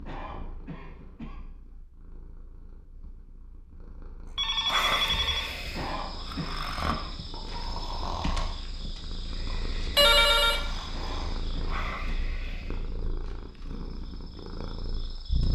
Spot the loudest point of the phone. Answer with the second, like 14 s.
10 s.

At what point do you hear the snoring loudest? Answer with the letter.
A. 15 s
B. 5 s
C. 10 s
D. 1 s
B.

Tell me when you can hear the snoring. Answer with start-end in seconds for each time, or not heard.
4.7-12.9.